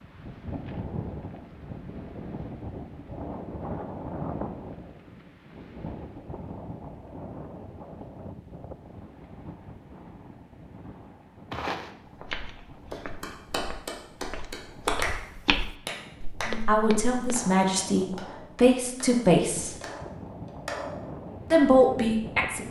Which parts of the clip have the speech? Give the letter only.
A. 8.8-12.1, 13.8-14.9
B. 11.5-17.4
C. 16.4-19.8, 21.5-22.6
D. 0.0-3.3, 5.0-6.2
C.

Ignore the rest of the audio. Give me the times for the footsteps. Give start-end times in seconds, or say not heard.
11.5-17.4.